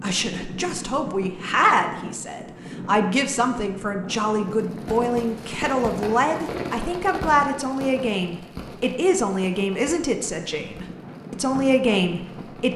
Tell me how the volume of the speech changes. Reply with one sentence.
The volume of the speech stays about the same.